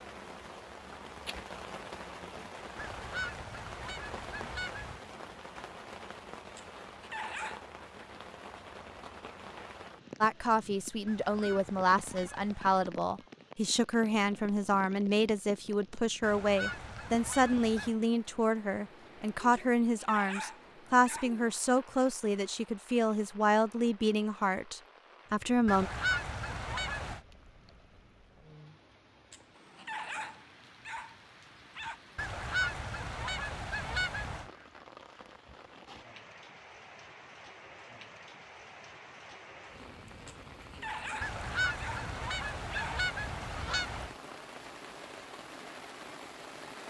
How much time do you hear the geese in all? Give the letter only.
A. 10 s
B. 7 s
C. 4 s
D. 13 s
D.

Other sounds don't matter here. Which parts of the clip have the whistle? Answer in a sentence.
You can't hear the whistle here.